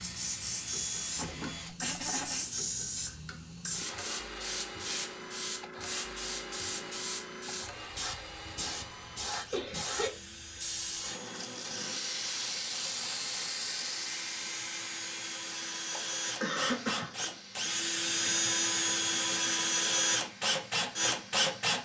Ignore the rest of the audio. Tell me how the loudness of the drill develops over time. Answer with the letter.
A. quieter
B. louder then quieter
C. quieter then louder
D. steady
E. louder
E.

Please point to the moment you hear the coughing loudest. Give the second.
17 s.